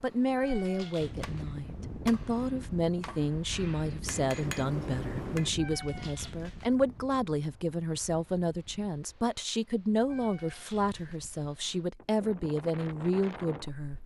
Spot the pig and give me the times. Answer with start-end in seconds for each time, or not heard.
not heard.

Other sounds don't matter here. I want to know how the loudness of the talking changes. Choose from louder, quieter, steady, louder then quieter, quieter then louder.
steady.